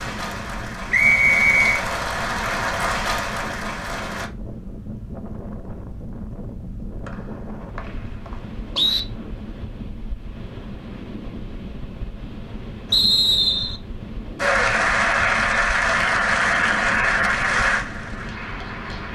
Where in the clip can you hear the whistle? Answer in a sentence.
You can hear the whistle from 0.9 to 1.8 s, from 7.0 to 9.1 s and from 12.9 to 13.8 s.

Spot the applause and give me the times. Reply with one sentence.
You can hear the applause from 0.0 to 4.3 s and from 14.3 to 19.0 s.